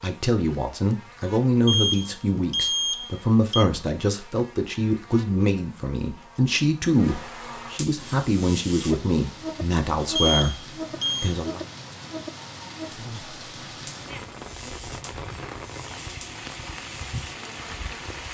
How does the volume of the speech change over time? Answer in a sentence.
The volume of the speech stays about the same.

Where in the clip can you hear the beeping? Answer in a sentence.
The beeping can be heard from 1.6 to 3.6 s and from 10.2 to 11.3 s.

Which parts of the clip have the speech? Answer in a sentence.
You can hear the speech from 0.0 to 11.7 s.